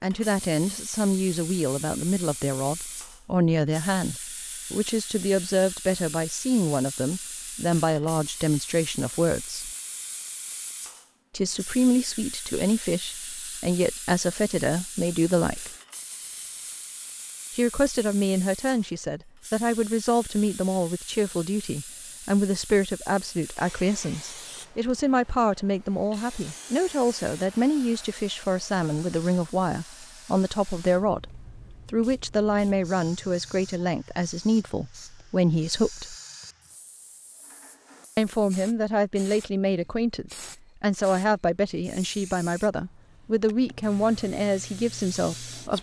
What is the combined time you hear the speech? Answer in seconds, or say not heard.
40 s.